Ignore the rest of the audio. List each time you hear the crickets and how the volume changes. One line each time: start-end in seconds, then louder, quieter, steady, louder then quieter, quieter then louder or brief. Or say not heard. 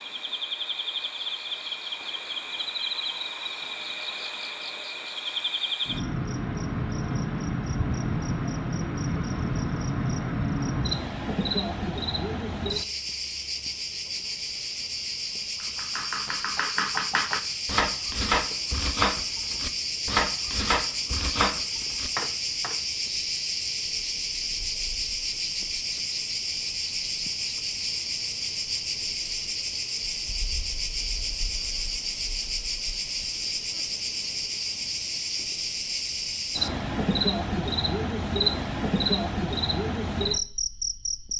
0.0-41.3 steady.